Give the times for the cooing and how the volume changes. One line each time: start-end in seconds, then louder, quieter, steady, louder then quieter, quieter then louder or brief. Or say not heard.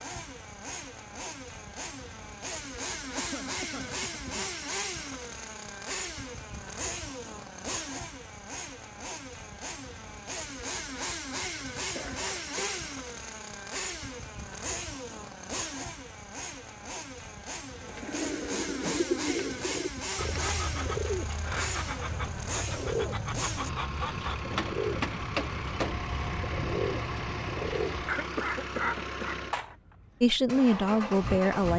17.8-28.1 steady.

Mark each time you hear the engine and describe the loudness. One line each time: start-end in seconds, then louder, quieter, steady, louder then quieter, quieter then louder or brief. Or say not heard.
0.0-31.7 steady.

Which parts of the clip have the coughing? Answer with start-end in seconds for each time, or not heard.
3.1-4.5, 11.9-12.9, 28.1-29.8.